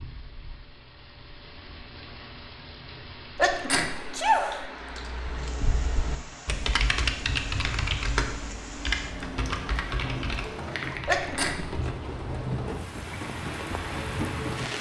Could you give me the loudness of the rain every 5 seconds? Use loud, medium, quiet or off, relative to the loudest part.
medium, medium, loud.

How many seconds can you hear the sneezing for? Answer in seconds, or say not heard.
2 s.